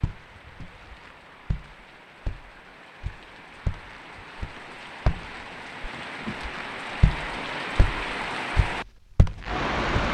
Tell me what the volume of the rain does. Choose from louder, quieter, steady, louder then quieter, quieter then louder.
louder.